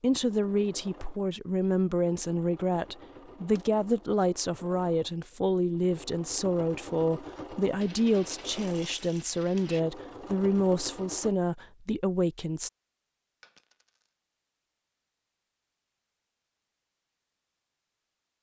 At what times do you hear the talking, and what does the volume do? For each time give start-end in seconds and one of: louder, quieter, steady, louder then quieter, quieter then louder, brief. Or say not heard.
0.0-12.7 steady.